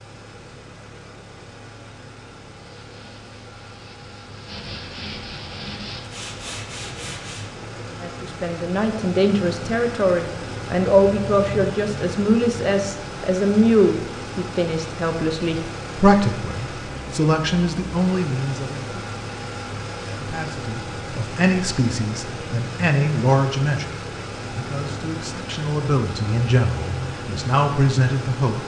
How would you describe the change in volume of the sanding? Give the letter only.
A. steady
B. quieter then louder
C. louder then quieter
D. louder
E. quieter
D.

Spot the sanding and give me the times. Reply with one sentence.
The sanding can be heard from 2.5 to 7.5 s.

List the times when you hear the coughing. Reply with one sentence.
You can't hear the coughing here.